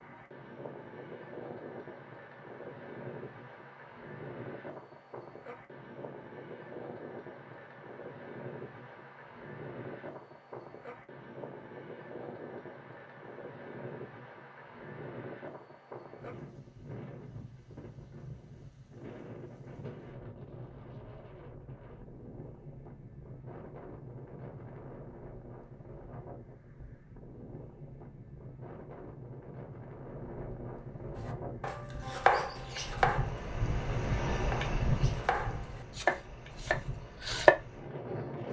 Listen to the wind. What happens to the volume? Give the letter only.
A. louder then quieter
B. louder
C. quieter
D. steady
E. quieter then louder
B.